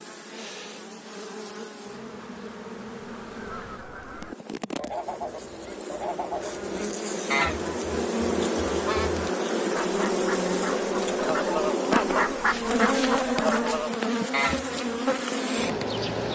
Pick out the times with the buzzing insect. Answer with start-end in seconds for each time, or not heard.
0.0-16.3.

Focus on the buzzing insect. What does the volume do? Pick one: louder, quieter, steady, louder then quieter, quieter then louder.
louder.